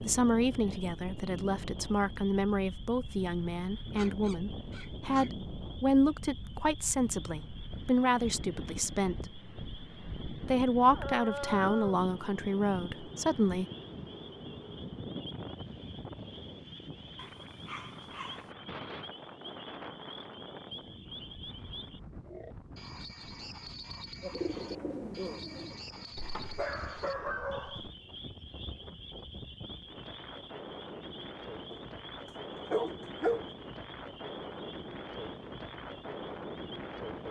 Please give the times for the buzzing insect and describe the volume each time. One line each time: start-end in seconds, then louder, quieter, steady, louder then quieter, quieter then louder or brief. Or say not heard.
not heard.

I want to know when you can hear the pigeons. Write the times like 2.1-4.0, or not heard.
24.2-25.8.